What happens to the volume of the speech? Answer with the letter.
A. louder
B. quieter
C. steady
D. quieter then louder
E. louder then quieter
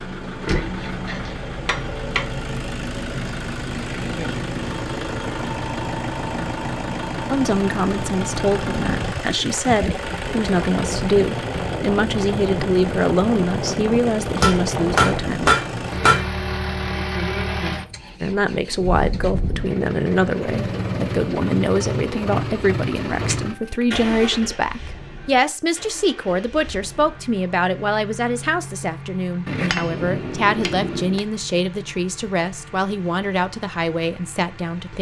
C.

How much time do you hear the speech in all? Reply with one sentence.
You can hear the speech for 25 seconds altogether.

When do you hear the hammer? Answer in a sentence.
The hammer can be heard from 0.4 to 2.2 s, from 14.4 to 16.2 s and from 29.4 to 31.2 s.